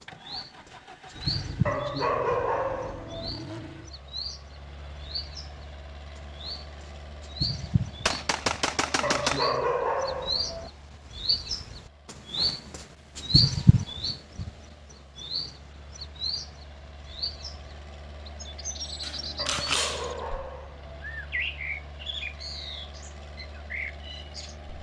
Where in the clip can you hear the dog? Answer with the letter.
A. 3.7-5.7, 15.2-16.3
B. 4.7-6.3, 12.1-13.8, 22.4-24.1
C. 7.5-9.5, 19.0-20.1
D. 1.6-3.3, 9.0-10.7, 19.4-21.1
D.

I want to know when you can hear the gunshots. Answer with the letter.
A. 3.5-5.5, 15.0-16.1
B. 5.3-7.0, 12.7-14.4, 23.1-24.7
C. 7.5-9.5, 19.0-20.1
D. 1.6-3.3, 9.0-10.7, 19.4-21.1
C.